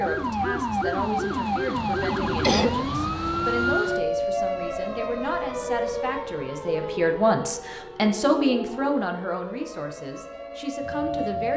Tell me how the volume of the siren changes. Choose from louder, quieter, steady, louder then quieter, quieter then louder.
quieter.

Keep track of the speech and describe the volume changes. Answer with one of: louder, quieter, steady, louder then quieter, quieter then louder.
louder then quieter.